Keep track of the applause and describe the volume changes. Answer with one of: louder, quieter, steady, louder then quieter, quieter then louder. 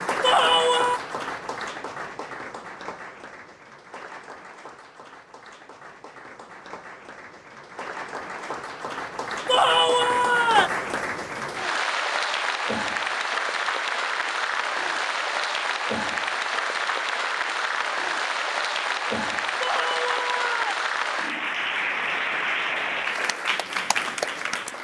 louder.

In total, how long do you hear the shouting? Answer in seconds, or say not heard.
3 s.